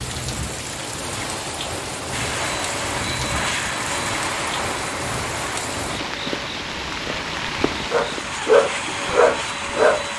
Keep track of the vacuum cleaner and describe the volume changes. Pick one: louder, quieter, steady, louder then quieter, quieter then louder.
quieter then louder.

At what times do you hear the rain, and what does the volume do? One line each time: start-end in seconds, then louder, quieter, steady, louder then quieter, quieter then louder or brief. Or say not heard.
0.0-8.4 steady.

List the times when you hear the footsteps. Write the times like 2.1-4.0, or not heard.
not heard.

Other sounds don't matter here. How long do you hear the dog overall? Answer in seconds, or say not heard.
2 s.